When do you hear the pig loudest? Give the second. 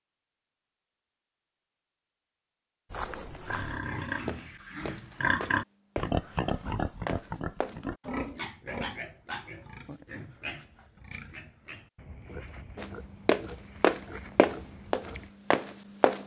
5 s.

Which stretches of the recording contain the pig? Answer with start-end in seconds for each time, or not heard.
3.5-15.3.